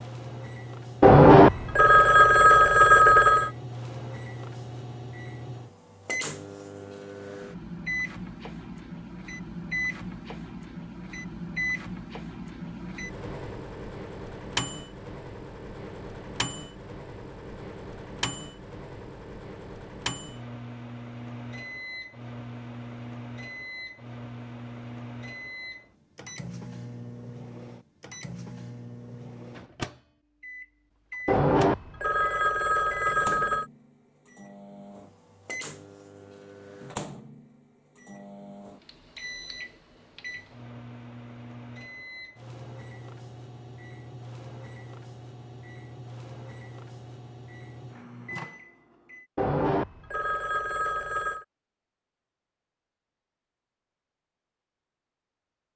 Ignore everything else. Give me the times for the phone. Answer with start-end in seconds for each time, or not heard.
1.0-3.5, 31.2-33.7, 49.4-51.5.